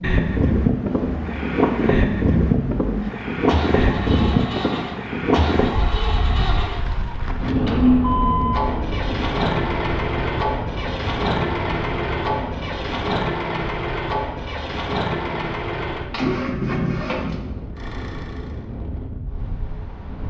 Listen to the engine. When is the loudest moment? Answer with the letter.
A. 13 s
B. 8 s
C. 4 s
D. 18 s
B.